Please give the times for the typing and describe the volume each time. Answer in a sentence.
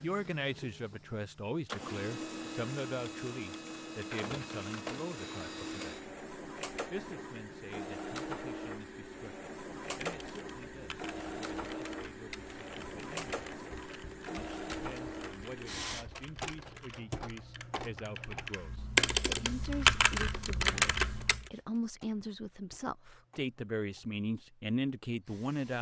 You can hear the typing from 9.8 to 21.5 s, getting louder.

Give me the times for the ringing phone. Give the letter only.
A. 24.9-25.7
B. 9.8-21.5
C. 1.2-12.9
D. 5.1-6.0
D.